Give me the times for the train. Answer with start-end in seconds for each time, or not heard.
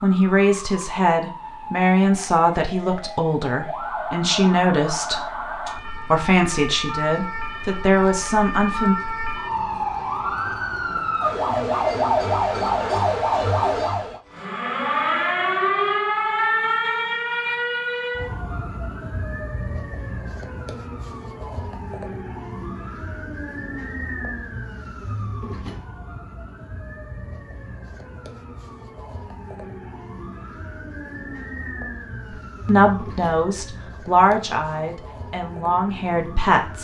not heard.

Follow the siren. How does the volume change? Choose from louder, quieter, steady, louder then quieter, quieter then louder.
louder then quieter.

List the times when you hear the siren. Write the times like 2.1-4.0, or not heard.
0.0-36.8.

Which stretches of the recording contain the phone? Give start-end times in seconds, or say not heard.
not heard.